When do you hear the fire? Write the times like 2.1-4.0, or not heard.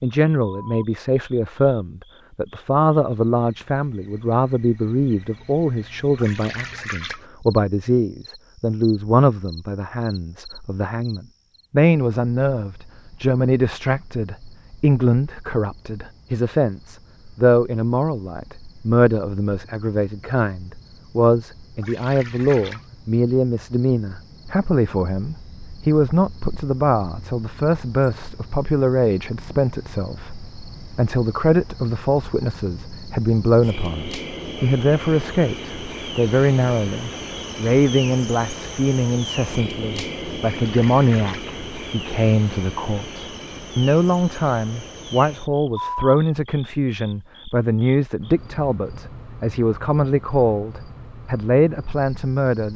not heard.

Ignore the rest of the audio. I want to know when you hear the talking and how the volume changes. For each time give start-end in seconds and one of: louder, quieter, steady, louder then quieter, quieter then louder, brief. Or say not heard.
0.0-52.7 steady.